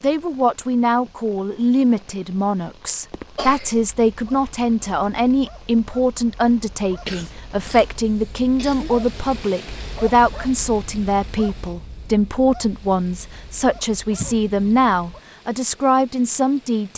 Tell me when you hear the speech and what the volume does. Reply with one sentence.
The speech can be heard from 0.0 to 16.9 s, at a steady volume.